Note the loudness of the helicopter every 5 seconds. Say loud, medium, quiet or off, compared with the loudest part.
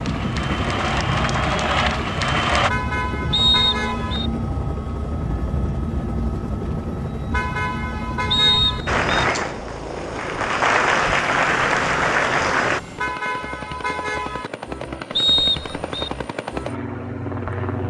loud, loud, medium, loud.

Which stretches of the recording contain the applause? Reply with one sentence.
You can hear the applause from 0.0 to 2.7 s and from 8.8 to 12.8 s.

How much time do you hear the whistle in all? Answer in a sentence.
You can hear the whistle for 3 seconds altogether.